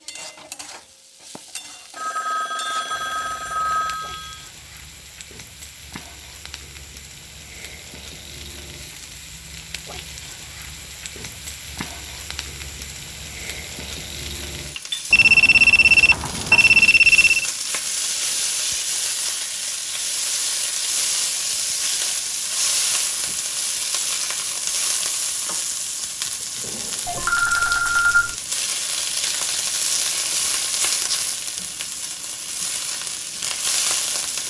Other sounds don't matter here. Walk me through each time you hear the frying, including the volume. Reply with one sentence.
You can hear the frying from 0.0 to 34.4 s, getting louder.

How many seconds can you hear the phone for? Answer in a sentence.
You can hear the phone for 6 seconds altogether.